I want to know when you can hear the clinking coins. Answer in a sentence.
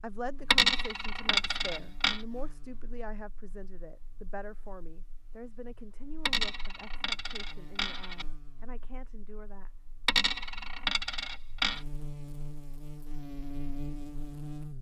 You can hear the clinking coins from 0.5 to 2.2 s, from 6.2 to 8.2 s and from 10.1 to 11.8 s.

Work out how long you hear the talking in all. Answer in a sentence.
You can hear the talking for 10 seconds altogether.